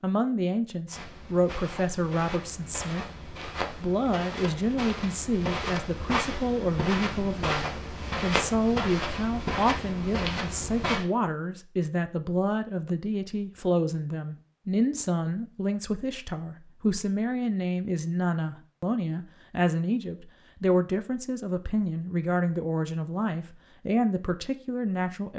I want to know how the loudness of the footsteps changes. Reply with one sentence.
The volume of the footsteps goes up.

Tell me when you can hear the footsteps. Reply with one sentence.
You can hear the footsteps from 0.8 to 11.1 s.